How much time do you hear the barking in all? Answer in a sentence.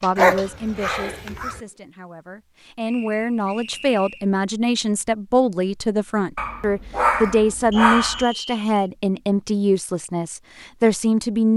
You can hear the barking for 3 seconds altogether.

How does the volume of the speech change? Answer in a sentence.
The loudness of the speech goes up.